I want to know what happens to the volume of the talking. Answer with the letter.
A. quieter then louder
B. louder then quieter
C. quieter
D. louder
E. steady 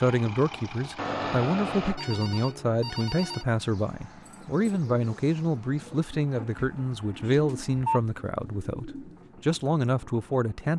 E.